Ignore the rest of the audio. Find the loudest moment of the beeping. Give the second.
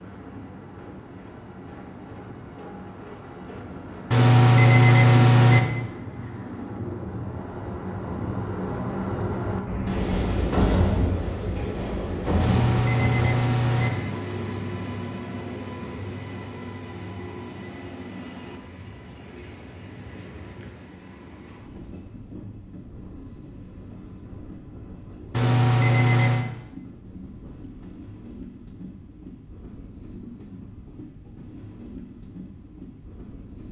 5 s.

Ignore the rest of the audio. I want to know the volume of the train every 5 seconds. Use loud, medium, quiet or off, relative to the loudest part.
quiet, loud, loud, medium, quiet, quiet, quiet.